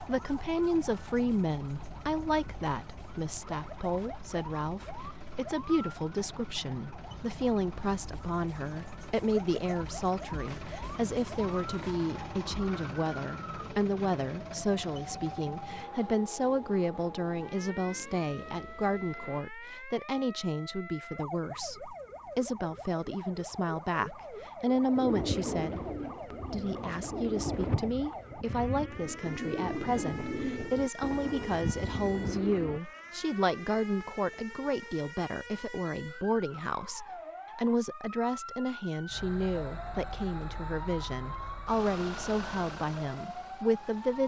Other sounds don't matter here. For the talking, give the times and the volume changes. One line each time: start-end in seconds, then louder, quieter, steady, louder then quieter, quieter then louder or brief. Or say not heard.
0.0-25.9 steady
26.5-44.2 steady.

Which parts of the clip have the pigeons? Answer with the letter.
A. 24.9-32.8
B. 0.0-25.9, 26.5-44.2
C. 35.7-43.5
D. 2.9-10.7
A.